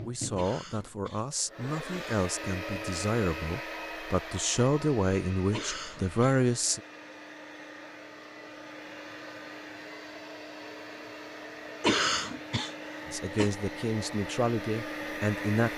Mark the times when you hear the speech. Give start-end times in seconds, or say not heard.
0.0-6.8, 13.1-15.7.